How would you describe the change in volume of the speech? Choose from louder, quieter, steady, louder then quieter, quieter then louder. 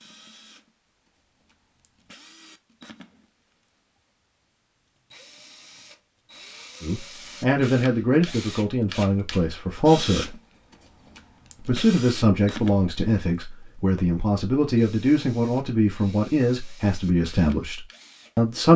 steady.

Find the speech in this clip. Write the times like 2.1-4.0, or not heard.
6.8-10.3, 11.7-18.7.